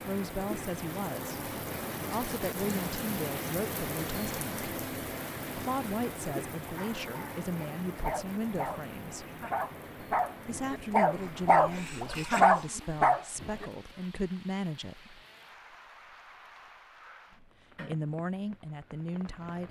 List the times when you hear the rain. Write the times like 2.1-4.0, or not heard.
0.0-19.6.